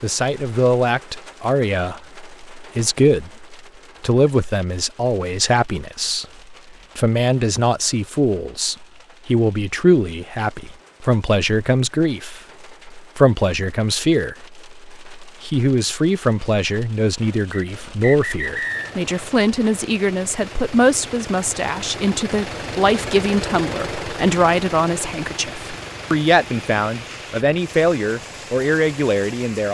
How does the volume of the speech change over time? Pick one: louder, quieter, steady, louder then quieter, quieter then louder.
steady.